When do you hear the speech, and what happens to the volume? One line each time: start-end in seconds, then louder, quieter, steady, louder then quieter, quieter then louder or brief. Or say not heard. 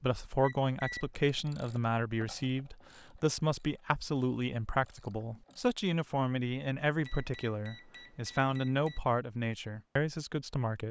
0.0-10.8 steady.